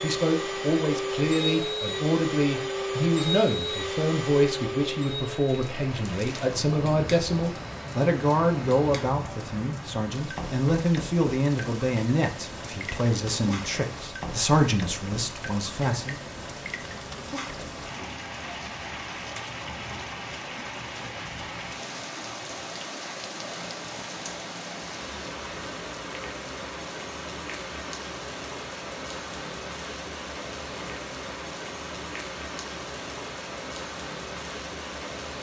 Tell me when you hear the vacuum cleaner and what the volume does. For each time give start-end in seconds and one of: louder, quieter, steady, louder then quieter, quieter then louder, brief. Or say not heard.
0.0-9.1 quieter.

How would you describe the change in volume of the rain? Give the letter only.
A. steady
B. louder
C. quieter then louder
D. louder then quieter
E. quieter
A.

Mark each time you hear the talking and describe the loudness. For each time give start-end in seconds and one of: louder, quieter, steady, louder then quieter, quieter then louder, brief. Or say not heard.
0.0-16.2 steady.